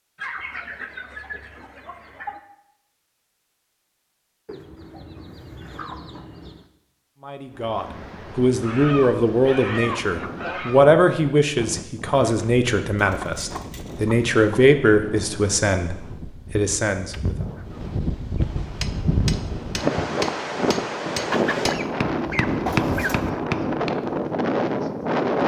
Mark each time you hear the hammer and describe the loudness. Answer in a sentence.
You can hear the hammer from 18.7 to 24.2 s, getting louder.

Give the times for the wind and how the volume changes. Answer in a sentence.
The wind can be heard from 7.5 to 25.4 s, getting louder.